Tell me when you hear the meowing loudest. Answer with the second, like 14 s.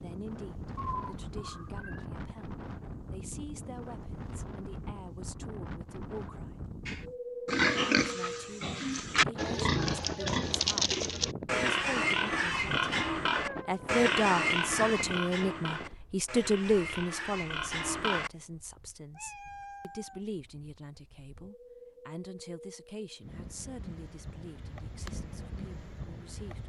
1 s.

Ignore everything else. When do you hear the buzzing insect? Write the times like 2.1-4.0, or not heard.
not heard.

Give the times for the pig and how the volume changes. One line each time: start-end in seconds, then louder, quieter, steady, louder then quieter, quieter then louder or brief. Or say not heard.
6.8-18.3 quieter.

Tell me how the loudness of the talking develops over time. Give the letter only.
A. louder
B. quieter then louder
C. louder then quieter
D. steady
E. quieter
C.